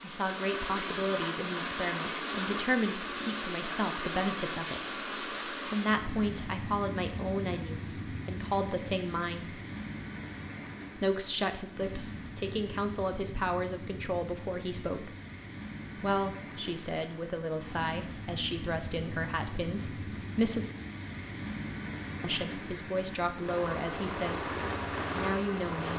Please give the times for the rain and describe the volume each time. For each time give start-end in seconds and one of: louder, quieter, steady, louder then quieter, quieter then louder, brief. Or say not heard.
0.0-25.9 quieter then louder.